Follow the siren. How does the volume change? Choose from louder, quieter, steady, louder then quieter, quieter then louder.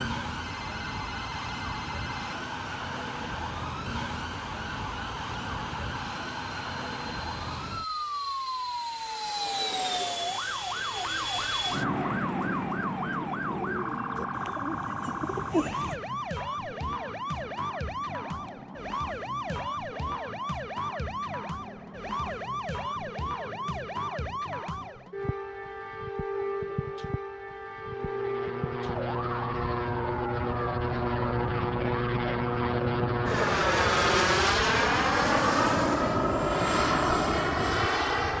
steady.